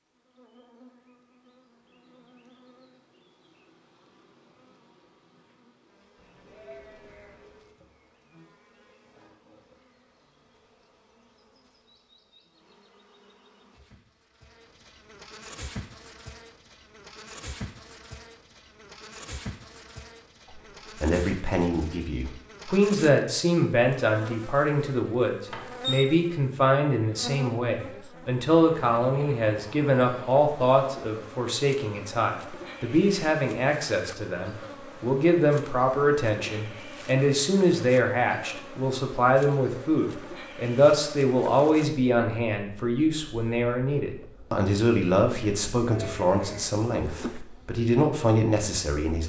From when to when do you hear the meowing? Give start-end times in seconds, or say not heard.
not heard.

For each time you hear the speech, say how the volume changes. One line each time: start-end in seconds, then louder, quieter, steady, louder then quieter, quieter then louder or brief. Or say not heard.
21.0-49.2 steady.